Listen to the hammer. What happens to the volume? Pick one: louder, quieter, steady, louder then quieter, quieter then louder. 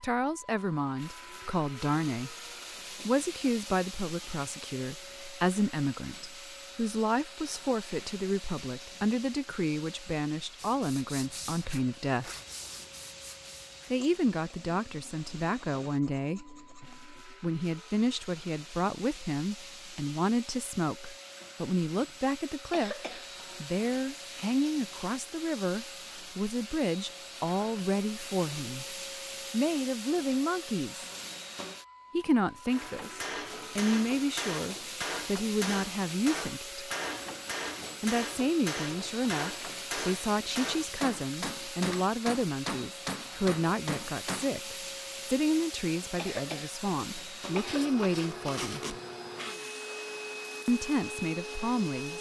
steady.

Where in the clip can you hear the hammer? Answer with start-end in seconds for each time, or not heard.
32.7-44.5.